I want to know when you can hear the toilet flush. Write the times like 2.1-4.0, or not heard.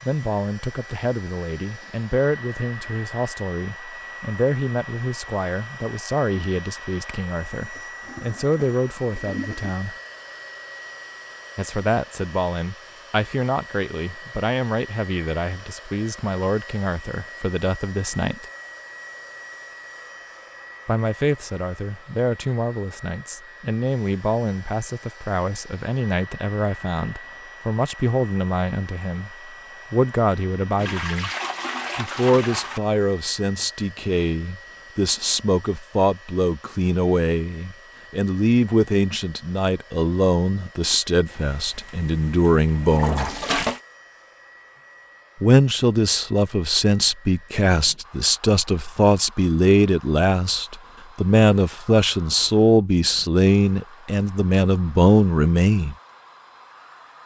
7.8-9.8, 30.8-32.8, 41.3-43.8.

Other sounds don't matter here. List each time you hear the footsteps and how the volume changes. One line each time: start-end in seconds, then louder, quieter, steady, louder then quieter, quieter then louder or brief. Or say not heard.
not heard.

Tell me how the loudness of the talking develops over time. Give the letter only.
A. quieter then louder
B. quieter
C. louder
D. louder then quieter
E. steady
C.